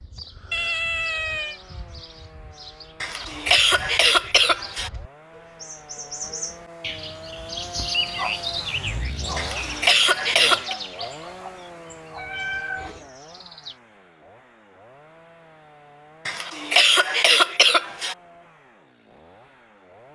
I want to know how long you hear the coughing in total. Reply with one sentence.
You can hear the coughing for 5 seconds altogether.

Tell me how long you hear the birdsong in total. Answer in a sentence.
You can hear the birdsong for 14 seconds altogether.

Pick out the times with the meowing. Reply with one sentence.
You can hear the meowing from 0.5 to 1.6 s and from 12.2 to 13.1 s.